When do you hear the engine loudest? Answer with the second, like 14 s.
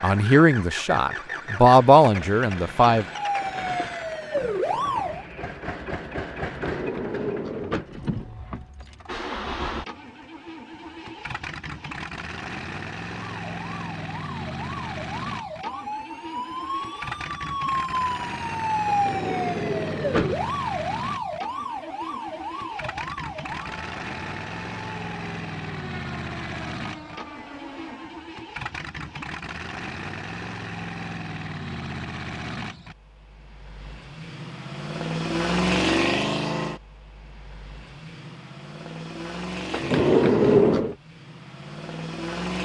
36 s.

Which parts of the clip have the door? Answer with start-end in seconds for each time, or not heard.
6.5-7.8, 18.9-20.4, 39.7-41.0.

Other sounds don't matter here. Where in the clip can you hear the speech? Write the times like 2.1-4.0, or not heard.
0.0-3.0.